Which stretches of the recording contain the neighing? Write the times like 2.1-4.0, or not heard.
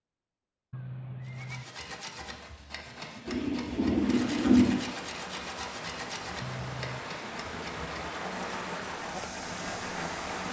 0.7-1.6, 6.4-7.1.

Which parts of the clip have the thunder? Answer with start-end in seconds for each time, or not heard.
3.2-5.0.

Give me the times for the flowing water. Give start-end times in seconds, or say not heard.
3.9-10.4.